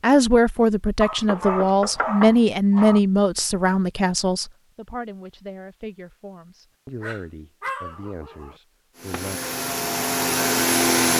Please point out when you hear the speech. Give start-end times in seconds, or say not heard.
0.0-9.4.